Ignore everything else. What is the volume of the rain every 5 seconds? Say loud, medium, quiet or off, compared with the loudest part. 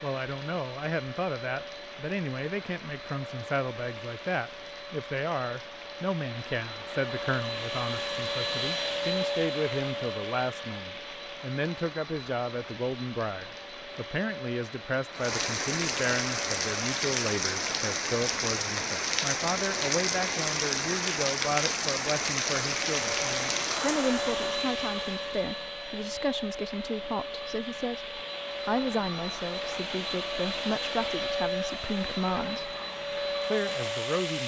quiet, quiet, quiet, loud, loud, off, off.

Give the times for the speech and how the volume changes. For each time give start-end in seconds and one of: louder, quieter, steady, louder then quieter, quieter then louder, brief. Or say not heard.
0.0-32.8 steady
33.5-34.4 brief.